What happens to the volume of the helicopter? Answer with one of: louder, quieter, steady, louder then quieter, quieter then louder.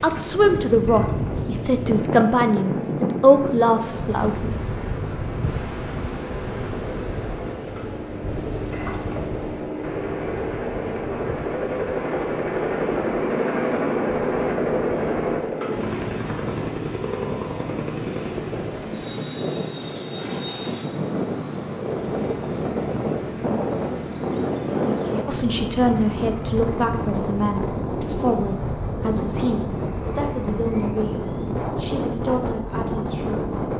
louder then quieter.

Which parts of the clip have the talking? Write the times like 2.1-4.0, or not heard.
0.0-4.6, 25.2-33.5.